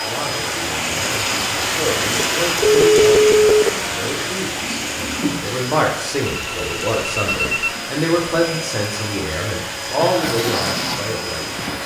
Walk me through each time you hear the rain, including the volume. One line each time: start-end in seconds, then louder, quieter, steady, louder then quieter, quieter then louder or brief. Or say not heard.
0.0-11.8 quieter.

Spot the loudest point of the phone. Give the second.
3 s.